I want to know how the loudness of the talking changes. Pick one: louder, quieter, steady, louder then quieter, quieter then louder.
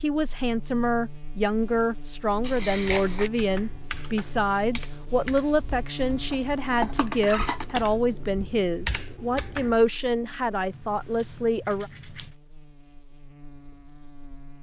steady.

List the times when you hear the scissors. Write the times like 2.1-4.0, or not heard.
2.4-3.3, 6.3-7.8, 10.7-12.3.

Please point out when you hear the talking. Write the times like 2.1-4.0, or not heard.
0.0-11.9.